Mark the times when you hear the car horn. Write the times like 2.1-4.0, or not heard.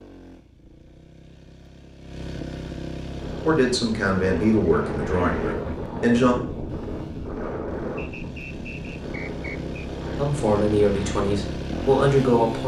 not heard.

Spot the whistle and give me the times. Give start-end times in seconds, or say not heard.
8.0-9.8.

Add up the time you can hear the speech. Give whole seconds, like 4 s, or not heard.
5 s.